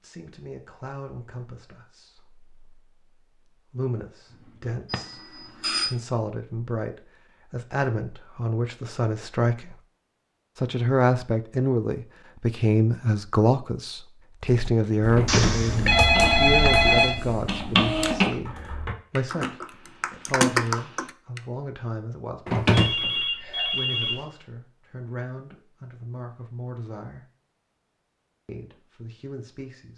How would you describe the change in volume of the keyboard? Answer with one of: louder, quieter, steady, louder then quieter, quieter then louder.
quieter then louder.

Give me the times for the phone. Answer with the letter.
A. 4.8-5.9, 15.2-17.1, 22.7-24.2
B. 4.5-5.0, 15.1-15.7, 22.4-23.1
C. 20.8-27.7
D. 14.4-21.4
A.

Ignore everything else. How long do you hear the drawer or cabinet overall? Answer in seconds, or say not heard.
2 s.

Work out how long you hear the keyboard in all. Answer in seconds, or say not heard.
7 s.